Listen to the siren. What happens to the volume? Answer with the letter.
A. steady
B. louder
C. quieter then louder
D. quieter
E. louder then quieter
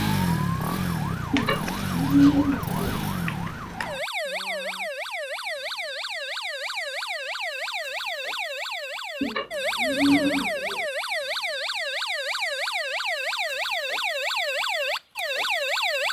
B.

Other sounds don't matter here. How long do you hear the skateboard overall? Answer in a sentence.
The skateboard can't be heard in this clip.